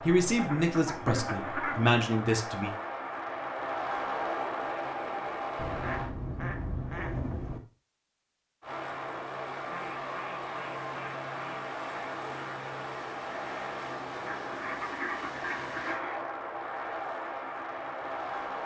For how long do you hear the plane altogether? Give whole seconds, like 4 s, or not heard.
16 s.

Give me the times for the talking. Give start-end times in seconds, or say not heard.
0.0-2.8.